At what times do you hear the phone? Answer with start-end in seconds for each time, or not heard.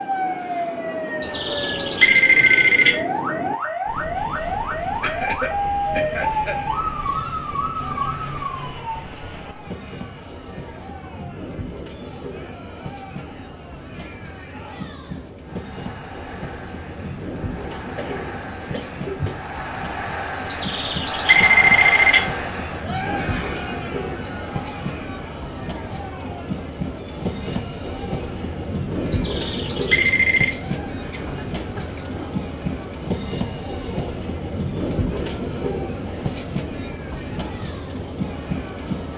1.2-3.0, 20.5-22.2, 29.1-30.5.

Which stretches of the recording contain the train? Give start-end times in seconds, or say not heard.
0.0-39.1.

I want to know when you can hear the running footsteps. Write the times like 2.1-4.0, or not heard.
not heard.